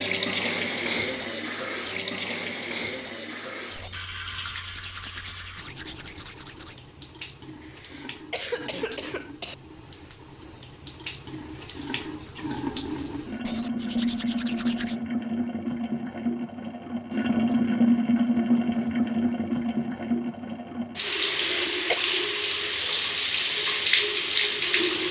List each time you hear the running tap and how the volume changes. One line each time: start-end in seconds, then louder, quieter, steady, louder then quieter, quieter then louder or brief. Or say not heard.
0.0-25.0 quieter then louder.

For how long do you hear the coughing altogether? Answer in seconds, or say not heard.
3 s.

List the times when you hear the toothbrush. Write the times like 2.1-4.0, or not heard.
3.8-6.8, 13.4-15.0.